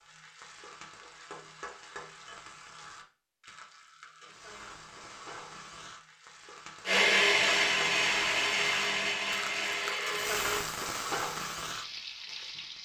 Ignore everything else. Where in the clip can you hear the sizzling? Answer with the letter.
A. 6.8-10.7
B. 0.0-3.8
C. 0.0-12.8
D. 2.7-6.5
C.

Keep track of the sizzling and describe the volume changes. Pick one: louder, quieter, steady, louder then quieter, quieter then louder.
louder.